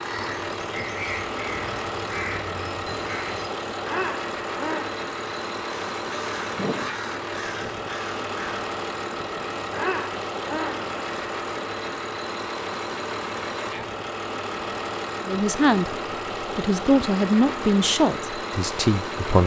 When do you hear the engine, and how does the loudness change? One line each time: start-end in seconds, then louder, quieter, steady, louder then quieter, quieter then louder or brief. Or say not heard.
0.0-19.4 steady.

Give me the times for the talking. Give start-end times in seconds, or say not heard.
15.2-19.4.